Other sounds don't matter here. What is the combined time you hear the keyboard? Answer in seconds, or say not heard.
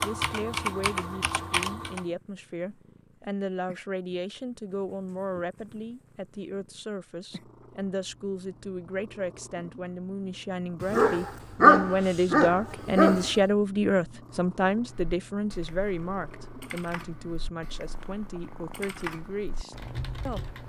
8 s.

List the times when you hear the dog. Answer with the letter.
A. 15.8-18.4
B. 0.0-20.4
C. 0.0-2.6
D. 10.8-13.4
D.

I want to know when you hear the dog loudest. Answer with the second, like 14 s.
12 s.